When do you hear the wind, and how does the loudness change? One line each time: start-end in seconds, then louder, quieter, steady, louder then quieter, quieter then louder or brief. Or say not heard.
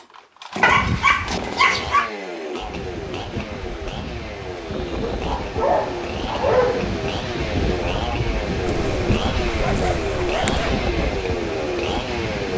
2.6-12.5 louder.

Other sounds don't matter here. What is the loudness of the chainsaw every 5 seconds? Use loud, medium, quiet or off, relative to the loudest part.
medium, loud, loud.